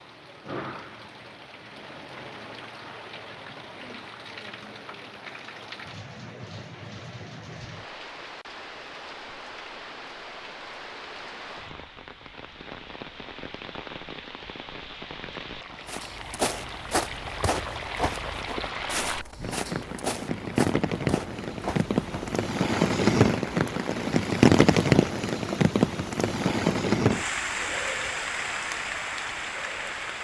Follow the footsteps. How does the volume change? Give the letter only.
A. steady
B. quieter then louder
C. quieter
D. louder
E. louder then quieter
C.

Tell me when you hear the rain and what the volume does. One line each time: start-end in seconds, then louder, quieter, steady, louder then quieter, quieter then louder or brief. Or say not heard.
0.0-30.1 louder.